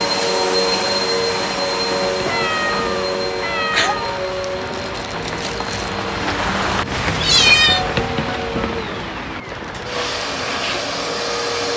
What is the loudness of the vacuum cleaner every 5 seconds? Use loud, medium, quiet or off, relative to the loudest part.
loud, medium, loud.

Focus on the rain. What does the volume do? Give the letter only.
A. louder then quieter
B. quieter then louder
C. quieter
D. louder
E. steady
A.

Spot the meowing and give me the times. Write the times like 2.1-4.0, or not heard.
2.2-4.1, 7.2-7.8.